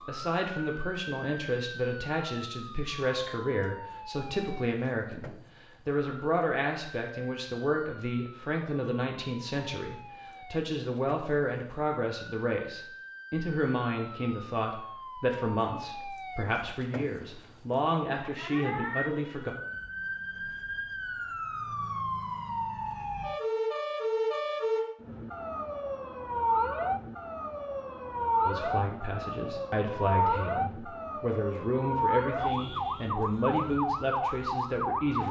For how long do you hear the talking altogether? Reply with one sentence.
You can hear the talking for 26 seconds altogether.